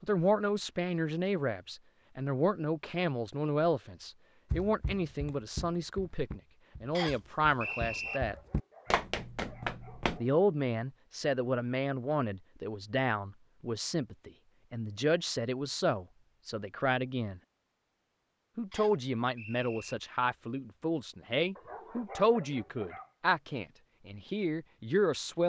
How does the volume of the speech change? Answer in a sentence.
The volume of the speech stays about the same.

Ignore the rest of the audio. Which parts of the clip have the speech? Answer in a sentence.
You can hear the speech from 0.0 to 8.3 s, from 10.2 to 17.4 s and from 18.6 to 25.4 s.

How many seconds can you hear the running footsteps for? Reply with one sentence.
The running footsteps can be heard for 6 seconds in total.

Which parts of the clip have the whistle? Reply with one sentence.
The whistle can be heard from 6.9 to 8.2 s and from 18.7 to 19.9 s.